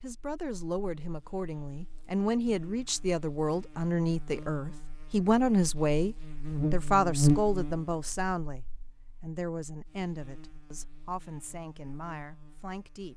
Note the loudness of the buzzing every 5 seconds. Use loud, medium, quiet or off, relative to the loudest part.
quiet, loud, quiet.